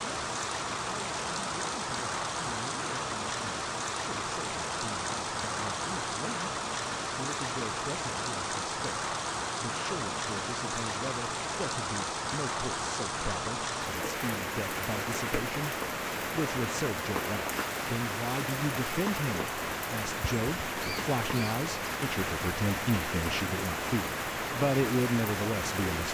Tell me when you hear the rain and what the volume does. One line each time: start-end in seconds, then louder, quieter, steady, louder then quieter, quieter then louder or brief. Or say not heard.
0.0-26.0 steady.